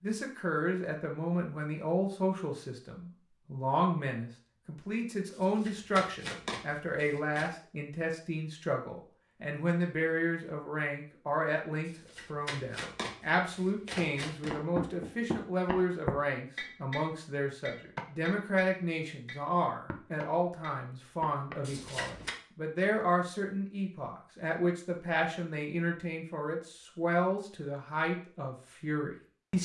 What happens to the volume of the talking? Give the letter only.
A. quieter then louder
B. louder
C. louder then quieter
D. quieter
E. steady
E.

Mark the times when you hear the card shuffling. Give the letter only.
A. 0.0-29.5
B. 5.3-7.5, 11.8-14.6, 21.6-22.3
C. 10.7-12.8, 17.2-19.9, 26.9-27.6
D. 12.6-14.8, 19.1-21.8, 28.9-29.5
B.